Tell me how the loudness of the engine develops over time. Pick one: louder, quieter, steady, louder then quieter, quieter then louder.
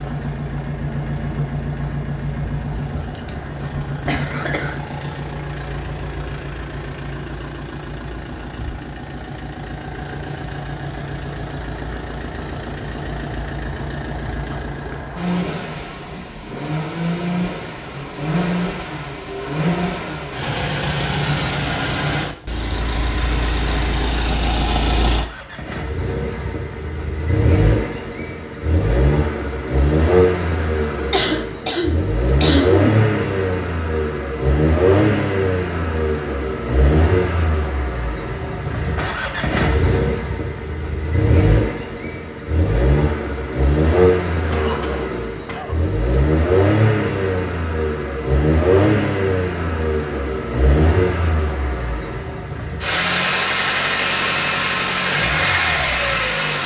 louder.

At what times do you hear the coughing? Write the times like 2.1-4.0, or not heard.
3.5-4.8, 31.1-32.9, 44.5-45.9.